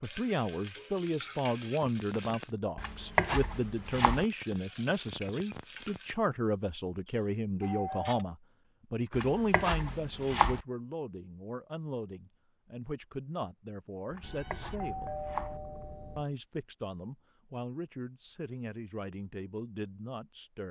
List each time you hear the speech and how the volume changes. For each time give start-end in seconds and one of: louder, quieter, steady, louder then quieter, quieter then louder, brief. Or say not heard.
0.0-15.2 quieter
16.1-20.6 steady.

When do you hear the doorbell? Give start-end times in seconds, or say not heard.
7.1-8.2, 14.2-16.2.